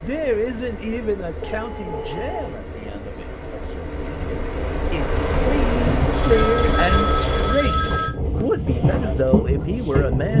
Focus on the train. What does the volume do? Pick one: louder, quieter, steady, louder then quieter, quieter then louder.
louder.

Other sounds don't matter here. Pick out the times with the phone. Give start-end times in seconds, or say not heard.
1.4-2.6, 6.1-8.2.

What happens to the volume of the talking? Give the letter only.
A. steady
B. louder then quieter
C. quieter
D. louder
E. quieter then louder
E.